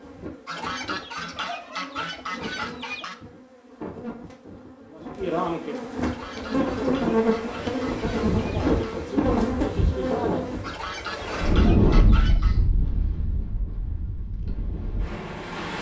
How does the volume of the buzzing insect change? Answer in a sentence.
The loudness of the buzzing insect goes up.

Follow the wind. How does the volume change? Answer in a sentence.
The loudness of the wind goes up, then down.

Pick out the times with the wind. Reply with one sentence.
The wind can be heard from 6.2 to 15.7 s.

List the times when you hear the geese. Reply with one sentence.
You can hear the geese from 0.5 to 3.2 s, from 6.0 to 9.0 s and from 10.6 to 12.6 s.